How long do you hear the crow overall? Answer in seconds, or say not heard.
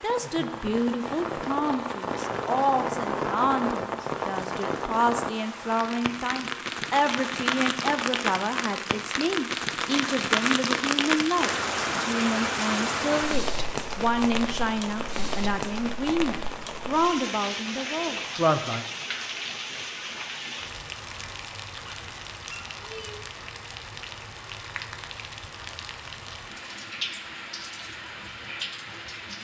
not heard.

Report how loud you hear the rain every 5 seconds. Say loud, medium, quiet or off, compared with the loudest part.
loud, loud, loud, medium, medium, medium.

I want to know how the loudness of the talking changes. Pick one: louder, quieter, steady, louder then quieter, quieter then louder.
steady.